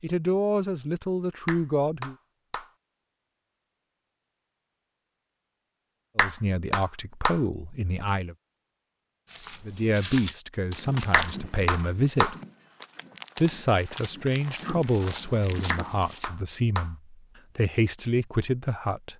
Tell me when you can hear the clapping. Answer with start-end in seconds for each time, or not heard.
1.4-2.7, 6.2-7.4, 11.1-12.3, 15.7-16.9.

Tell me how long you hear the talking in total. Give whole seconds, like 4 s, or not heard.
13 s.